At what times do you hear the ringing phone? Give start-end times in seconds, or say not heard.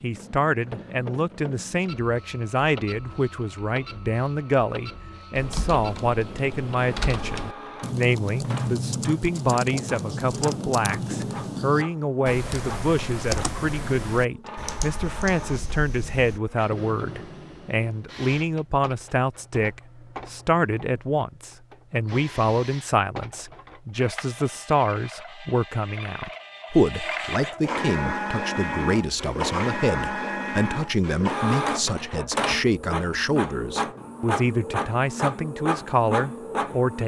not heard.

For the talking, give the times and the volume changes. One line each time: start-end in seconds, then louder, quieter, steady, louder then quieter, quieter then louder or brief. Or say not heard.
0.0-37.0 steady.